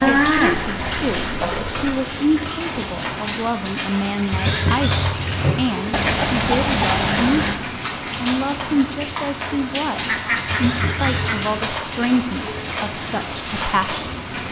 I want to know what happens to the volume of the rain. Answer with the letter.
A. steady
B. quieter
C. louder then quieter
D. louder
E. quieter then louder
A.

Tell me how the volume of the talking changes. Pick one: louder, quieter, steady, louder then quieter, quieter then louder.
steady.